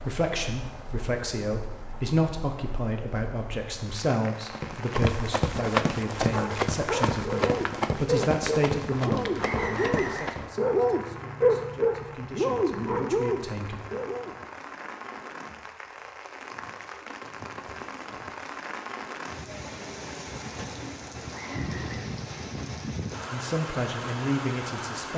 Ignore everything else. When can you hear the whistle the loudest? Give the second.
10 s.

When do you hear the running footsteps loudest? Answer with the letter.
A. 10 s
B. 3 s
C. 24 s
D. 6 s
D.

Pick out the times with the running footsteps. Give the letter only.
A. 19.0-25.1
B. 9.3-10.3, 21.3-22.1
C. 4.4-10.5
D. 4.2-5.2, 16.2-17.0
C.